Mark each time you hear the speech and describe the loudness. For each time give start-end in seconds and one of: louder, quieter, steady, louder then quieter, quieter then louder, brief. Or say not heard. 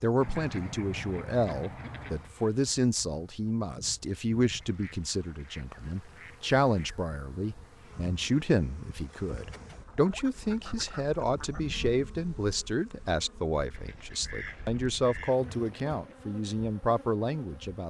0.0-17.8 steady.